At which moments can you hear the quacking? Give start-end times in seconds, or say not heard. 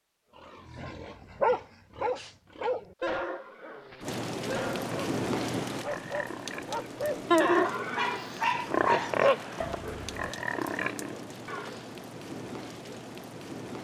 not heard.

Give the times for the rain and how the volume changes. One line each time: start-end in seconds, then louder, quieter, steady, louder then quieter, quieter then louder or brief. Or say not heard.
4.0-13.7 quieter.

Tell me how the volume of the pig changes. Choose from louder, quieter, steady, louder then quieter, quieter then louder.
louder then quieter.